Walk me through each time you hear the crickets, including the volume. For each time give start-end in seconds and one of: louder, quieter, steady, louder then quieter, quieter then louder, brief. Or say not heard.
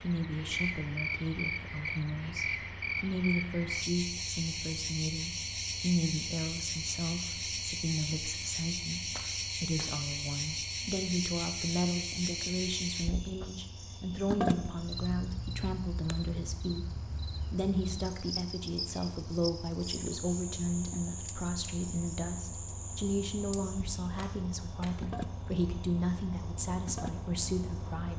0.0-28.1 quieter.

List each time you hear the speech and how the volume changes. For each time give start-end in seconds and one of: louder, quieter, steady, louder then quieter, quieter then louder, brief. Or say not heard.
0.0-28.1 steady.